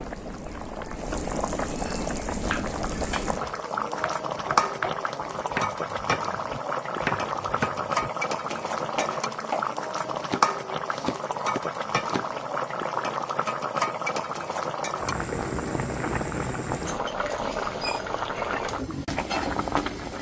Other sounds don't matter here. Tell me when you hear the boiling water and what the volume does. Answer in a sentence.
The boiling water can be heard from 0.0 to 20.1 s, at a steady volume.